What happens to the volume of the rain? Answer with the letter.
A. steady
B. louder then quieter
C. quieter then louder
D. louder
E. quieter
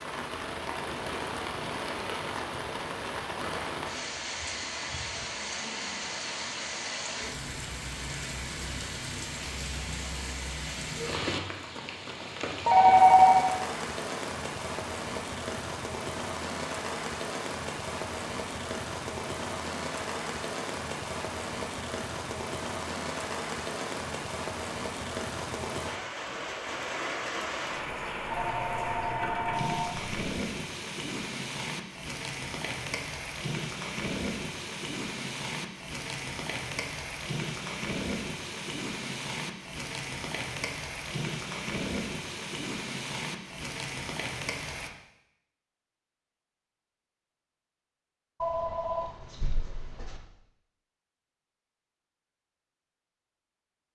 A.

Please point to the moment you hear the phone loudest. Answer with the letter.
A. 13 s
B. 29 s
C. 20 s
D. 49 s
A.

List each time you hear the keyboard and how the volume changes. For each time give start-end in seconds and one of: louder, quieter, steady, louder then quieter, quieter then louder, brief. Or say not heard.
not heard.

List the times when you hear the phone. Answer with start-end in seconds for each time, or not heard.
12.7-13.4, 28.3-30.2, 48.4-50.2.